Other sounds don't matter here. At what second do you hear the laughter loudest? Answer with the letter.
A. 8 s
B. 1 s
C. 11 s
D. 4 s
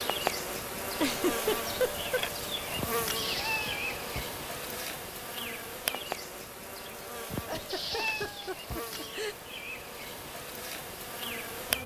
B.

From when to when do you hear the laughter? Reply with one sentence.
You can hear the laughter from 1.0 to 2.2 s and from 7.3 to 9.3 s.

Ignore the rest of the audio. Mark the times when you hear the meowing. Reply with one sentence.
You can hear the meowing from 2.8 to 4.3 s and from 7.3 to 9.1 s.